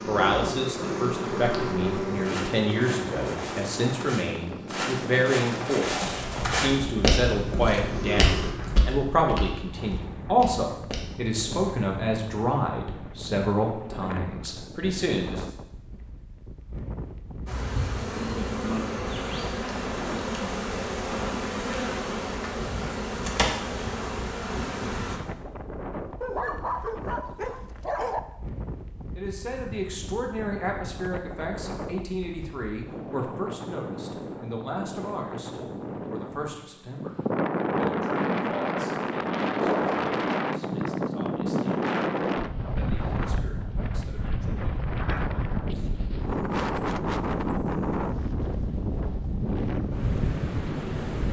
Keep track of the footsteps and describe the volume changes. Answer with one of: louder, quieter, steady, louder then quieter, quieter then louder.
louder then quieter.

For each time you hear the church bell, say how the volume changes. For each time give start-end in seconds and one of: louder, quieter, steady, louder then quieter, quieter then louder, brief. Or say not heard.
not heard.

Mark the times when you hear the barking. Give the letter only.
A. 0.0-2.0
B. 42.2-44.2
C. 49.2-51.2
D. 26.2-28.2
D.